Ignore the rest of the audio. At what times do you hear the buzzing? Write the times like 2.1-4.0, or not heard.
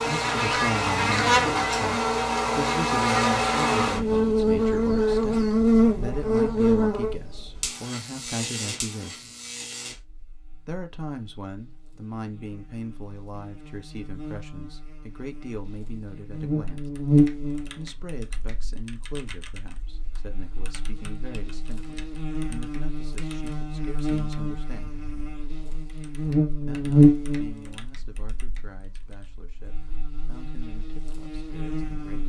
0.0-32.2.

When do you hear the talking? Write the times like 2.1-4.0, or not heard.
0.1-9.3, 10.7-16.9, 17.8-24.9, 26.6-32.2.